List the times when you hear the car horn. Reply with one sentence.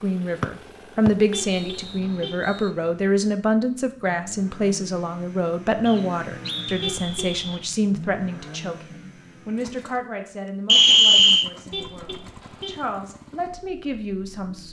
You can hear the car horn from 1.3 to 2.4 s, from 6.8 to 7.7 s and from 11.7 to 12.8 s.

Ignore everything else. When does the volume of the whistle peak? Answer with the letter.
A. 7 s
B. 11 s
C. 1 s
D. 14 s
B.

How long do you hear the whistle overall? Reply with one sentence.
You can hear the whistle for 5 seconds altogether.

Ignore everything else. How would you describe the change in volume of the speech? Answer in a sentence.
The volume of the speech goes down.